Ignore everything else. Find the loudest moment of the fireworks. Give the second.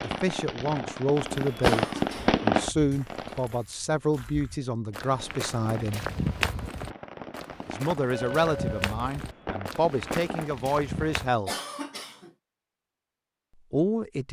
2 s.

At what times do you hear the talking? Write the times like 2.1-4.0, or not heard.
0.0-6.0, 7.7-11.5, 13.7-14.2.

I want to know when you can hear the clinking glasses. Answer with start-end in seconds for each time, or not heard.
8.1-8.9.